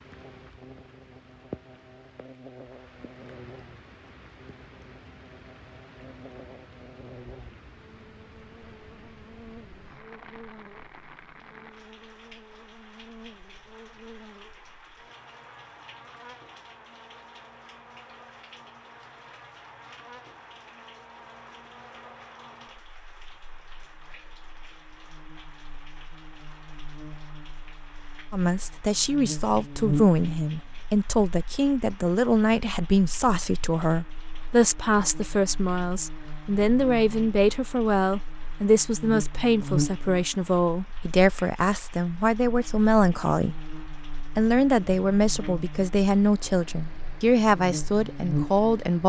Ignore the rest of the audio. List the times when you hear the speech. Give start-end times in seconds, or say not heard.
28.3-49.0.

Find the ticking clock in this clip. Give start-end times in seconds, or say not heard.
not heard.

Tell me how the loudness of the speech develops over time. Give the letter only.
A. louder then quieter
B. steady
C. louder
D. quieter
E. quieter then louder
B.